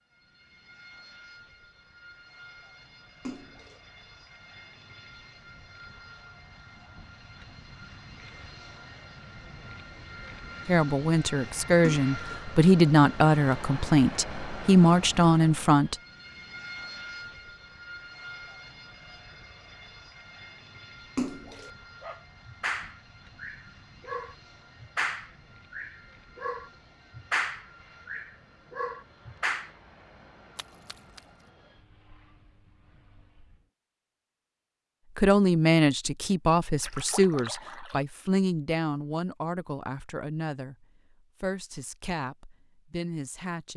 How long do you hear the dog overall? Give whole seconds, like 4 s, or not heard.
8 s.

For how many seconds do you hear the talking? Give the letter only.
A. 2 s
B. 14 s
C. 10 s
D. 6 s
B.